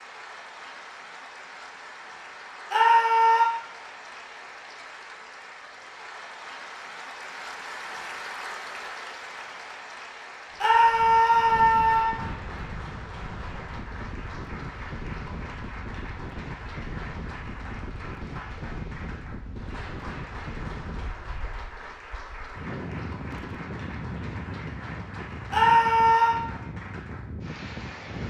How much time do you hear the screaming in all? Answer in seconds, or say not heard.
3 s.